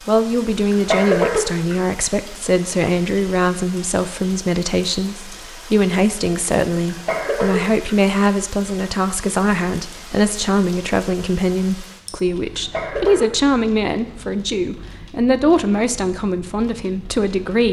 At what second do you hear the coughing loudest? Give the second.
1 s.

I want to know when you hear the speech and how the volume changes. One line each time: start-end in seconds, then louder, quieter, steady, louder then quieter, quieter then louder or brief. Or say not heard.
0.1-17.6 steady.